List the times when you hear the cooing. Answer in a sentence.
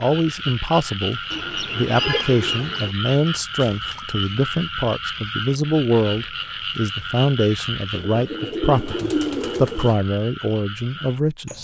The cooing can be heard from 1.3 to 3.0 s and from 7.9 to 9.9 s.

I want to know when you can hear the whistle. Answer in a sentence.
You can't hear the whistle here.